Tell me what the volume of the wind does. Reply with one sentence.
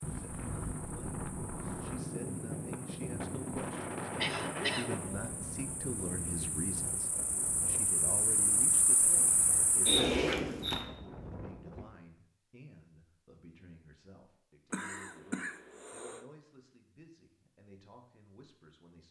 The loudness of the wind goes down.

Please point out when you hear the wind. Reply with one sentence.
The wind can be heard from 0.0 to 11.8 s.